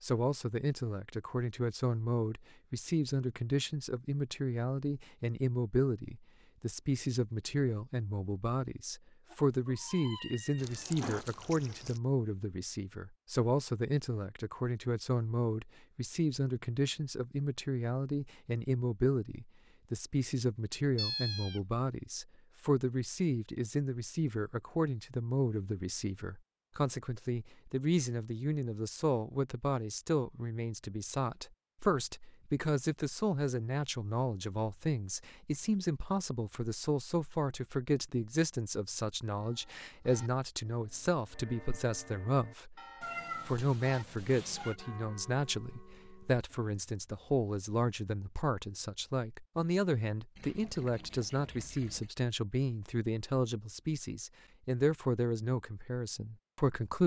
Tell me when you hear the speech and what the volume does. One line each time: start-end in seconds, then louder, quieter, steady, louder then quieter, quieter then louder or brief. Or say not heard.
0.0-57.0 steady.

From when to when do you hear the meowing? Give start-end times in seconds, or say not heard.
9.3-11.2, 20.9-21.6, 43.0-44.8.